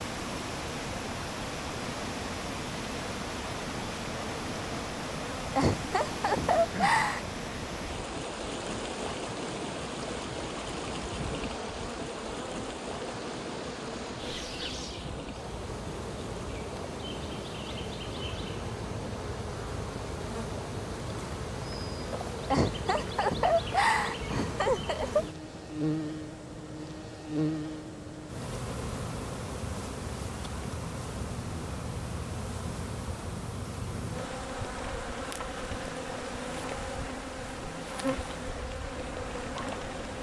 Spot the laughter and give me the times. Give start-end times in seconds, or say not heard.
5.5-7.2, 22.5-25.2.